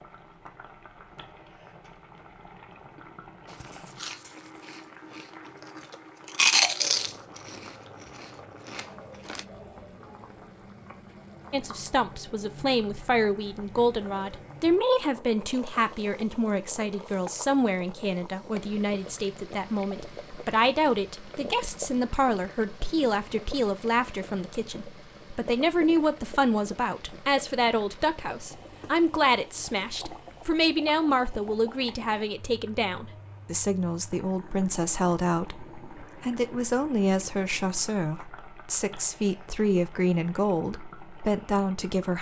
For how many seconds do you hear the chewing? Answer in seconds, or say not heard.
4 s.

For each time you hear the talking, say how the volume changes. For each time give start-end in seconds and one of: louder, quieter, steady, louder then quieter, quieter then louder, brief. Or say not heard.
11.5-42.1 steady.